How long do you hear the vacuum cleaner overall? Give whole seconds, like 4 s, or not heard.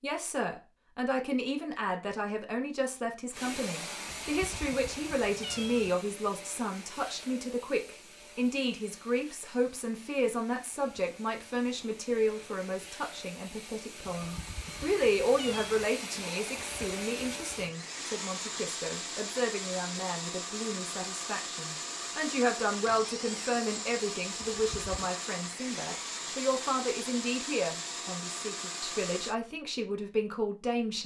26 s.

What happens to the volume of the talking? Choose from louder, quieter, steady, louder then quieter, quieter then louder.
steady.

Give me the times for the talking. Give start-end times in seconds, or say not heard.
0.0-31.0.